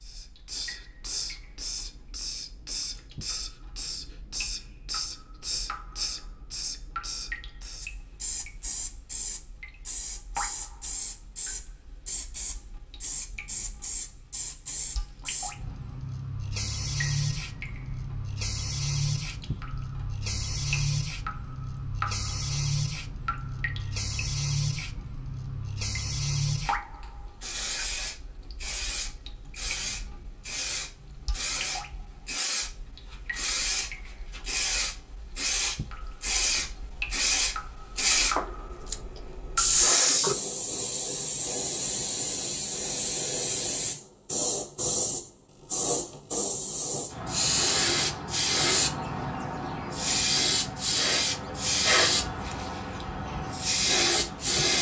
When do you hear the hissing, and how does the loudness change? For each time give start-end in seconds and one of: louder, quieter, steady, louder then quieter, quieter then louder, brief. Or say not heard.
0.0-54.7 louder.